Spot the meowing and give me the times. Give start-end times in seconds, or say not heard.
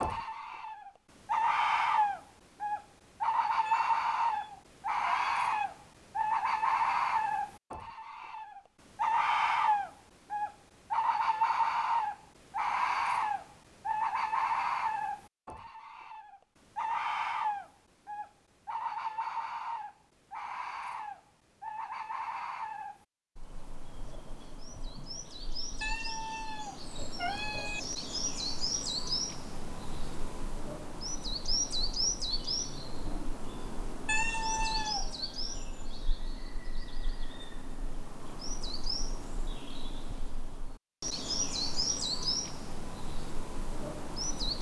3.6-5.7, 25.8-27.8, 34.0-35.0.